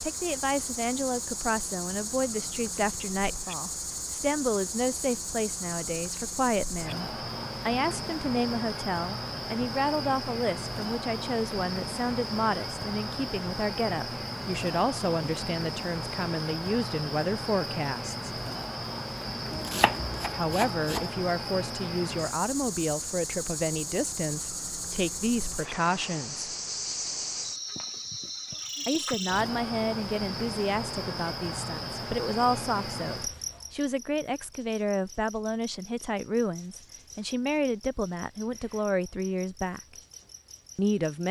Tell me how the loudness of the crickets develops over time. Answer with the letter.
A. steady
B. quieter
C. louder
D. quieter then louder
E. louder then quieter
B.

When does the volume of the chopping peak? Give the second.
20 s.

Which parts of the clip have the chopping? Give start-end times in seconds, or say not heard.
19.5-21.1.